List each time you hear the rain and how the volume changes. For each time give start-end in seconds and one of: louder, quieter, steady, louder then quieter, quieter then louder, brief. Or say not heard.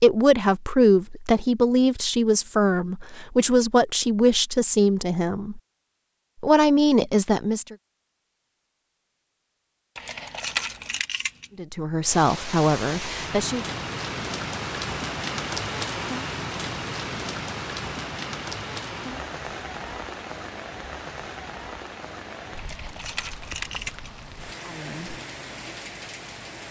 12.0-26.6 quieter.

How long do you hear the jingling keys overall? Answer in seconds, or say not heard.
3 s.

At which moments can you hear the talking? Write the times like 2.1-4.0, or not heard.
0.0-5.6, 6.4-7.8, 11.6-13.7, 24.6-25.1.